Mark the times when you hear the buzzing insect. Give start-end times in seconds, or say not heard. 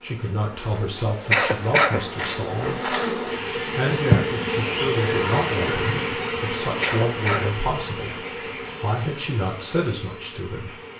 0.0-10.9.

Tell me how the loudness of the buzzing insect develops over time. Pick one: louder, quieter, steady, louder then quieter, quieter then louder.
louder then quieter.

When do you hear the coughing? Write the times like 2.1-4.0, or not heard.
1.3-2.0, 6.8-7.5.